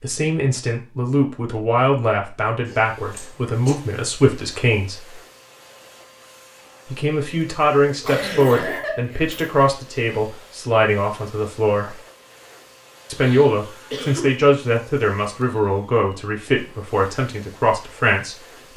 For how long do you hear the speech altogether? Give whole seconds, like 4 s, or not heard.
16 s.